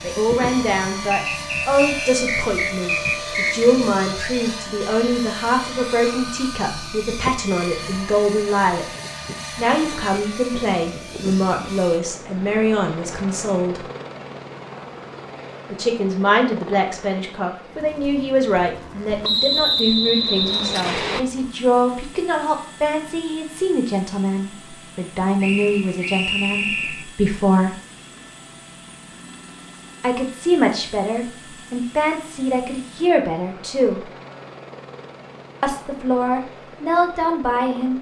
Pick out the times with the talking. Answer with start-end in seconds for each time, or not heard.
0.0-8.8, 9.6-13.8, 15.7-27.8, 30.0-34.1, 35.6-37.9.